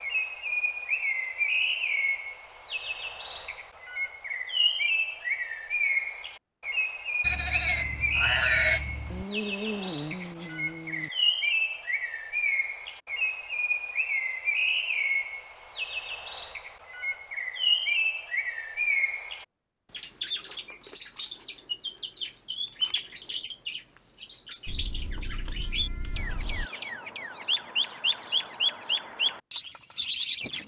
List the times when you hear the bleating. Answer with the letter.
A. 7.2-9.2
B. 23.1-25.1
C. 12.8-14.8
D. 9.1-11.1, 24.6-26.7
A.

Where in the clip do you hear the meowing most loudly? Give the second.
10 s.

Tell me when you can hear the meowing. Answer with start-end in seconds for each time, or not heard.
9.1-11.1, 24.6-26.7.